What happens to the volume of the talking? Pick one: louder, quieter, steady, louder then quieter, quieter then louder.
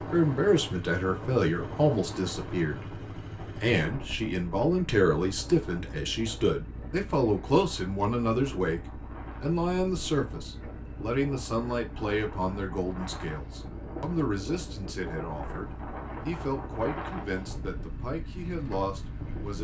quieter.